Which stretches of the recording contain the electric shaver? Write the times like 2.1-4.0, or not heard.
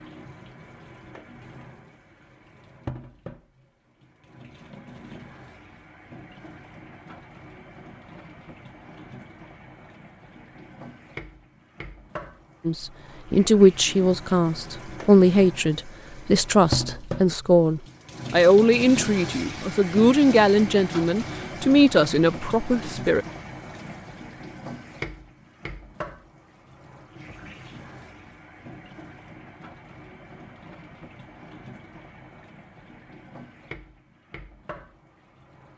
not heard.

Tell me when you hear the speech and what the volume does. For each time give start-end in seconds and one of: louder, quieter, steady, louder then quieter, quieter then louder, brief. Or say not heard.
12.7-23.2 steady.